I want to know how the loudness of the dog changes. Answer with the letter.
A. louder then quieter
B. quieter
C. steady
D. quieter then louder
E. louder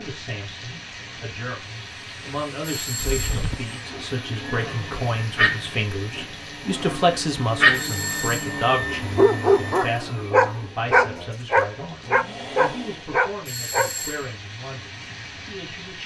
E.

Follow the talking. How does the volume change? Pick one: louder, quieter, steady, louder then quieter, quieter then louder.
louder then quieter.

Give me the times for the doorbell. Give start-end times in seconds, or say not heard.
2.6-3.5, 7.7-8.6, 13.4-14.3.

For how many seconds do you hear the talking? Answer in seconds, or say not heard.
16 s.